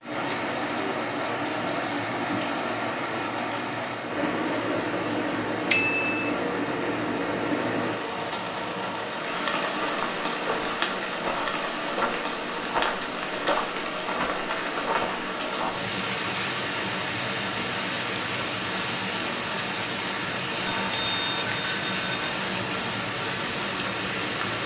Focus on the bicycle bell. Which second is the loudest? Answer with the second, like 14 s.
6 s.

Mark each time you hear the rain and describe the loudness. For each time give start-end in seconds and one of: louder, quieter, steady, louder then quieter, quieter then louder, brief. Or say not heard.
0.0-24.6 steady.